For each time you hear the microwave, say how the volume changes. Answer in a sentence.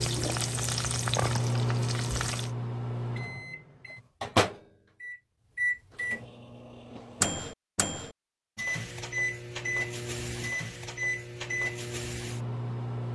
You can hear the microwave from 0.0 to 13.0 s, at a steady volume.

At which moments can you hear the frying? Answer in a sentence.
The frying can be heard from 0.0 to 2.5 s.